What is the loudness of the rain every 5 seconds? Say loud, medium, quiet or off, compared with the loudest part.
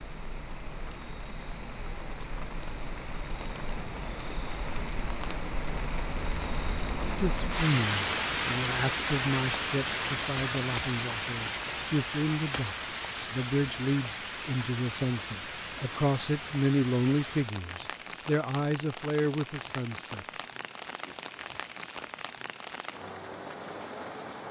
medium, loud, loud, medium, medium.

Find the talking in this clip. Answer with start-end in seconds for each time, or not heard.
7.2-20.2.